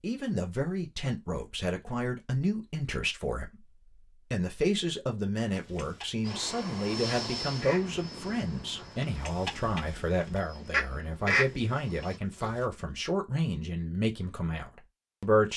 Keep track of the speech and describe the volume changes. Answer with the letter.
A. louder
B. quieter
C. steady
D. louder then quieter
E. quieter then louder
C.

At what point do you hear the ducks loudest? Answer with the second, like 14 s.
11 s.